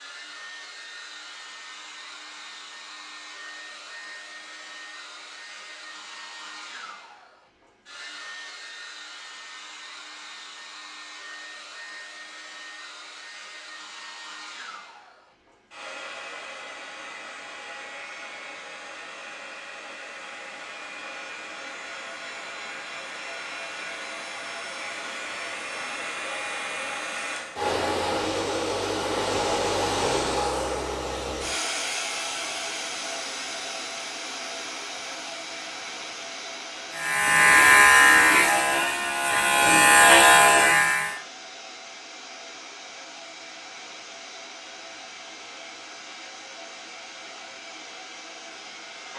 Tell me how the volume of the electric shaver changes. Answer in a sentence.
The loudness of the electric shaver goes down, then up.